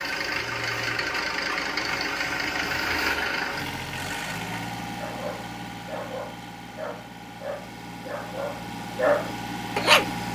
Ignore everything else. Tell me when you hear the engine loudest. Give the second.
3 s.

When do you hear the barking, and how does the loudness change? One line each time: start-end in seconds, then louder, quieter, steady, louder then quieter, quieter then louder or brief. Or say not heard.
5.0-10.1 louder.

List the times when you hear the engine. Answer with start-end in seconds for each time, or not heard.
0.0-10.3.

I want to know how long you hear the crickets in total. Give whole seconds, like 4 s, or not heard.
not heard.